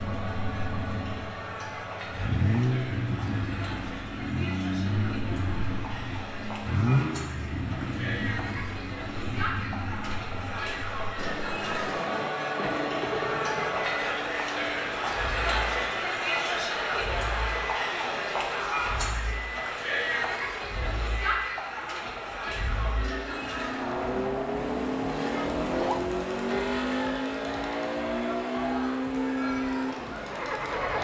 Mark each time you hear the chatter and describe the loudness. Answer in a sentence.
The chatter can be heard from 0.0 to 30.9 s, getting louder then quieter.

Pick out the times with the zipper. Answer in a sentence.
The zipper can be heard from 11.2 to 12.3 s and from 24.6 to 26.1 s.